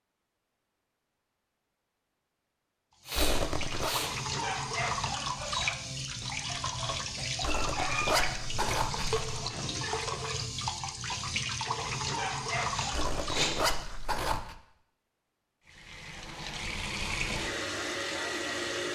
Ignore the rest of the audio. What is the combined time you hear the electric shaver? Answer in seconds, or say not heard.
not heard.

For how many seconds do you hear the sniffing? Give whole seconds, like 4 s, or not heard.
2 s.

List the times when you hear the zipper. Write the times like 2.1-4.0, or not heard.
3.1-4.0, 7.4-9.4, 12.9-14.6.